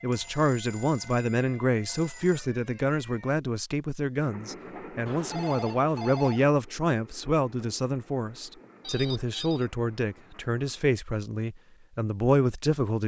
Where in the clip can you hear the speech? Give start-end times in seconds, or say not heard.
0.0-13.0.